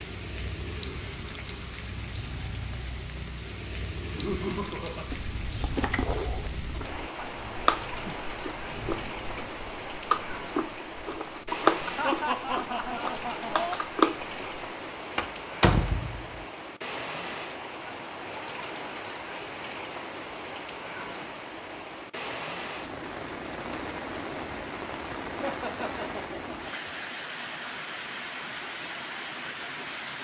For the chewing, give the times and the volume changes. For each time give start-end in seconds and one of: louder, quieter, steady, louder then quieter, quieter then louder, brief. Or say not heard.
4.4-14.7 louder.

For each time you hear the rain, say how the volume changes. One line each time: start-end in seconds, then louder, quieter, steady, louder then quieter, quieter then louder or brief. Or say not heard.
0.0-30.2 steady.